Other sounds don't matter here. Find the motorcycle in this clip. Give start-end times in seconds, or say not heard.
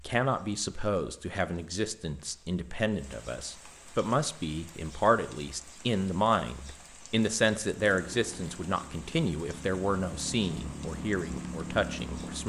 7.8-12.4.